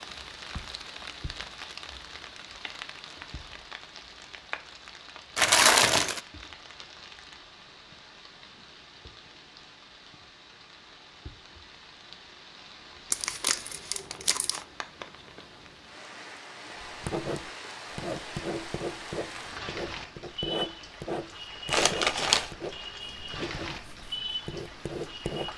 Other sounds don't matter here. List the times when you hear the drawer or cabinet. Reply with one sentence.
The drawer or cabinet can't be heard in this clip.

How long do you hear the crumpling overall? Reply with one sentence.
You can hear the crumpling for 3 seconds altogether.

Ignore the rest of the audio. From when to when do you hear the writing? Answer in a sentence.
The writing can be heard from 16.8 to 25.5 s.